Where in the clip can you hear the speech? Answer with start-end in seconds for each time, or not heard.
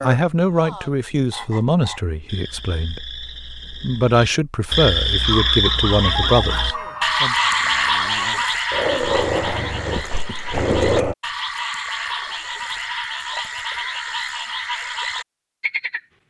0.0-7.3.